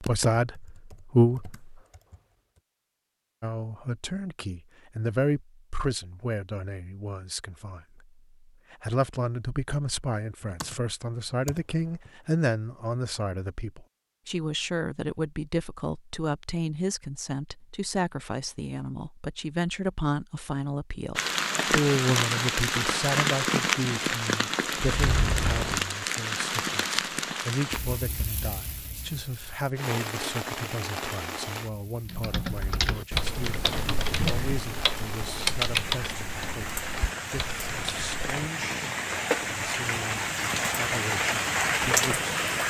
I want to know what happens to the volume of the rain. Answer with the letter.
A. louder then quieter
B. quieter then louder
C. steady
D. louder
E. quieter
B.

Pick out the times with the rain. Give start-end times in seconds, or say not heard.
21.1-42.6.